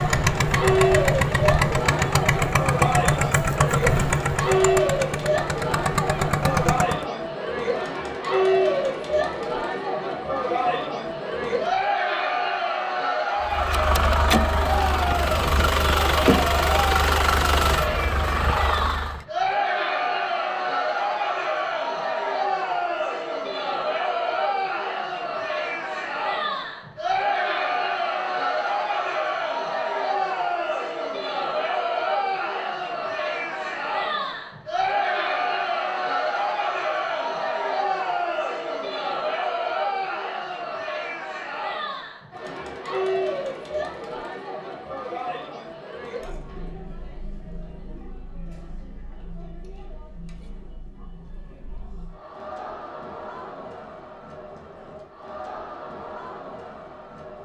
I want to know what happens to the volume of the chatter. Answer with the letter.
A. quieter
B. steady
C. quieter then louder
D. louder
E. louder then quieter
A.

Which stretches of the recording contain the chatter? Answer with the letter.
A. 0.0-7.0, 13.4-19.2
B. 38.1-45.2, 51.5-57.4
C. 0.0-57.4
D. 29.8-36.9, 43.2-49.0
C.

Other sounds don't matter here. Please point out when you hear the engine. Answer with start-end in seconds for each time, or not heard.
0.0-7.0, 13.4-19.2.